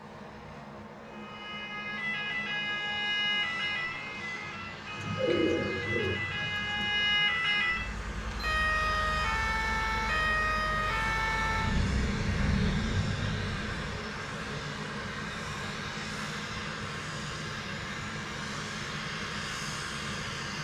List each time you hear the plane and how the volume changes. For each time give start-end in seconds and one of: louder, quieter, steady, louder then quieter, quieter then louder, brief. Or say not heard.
0.0-20.5 louder.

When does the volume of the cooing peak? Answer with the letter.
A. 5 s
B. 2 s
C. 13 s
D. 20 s
A.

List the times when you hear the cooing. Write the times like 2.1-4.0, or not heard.
5.0-6.9.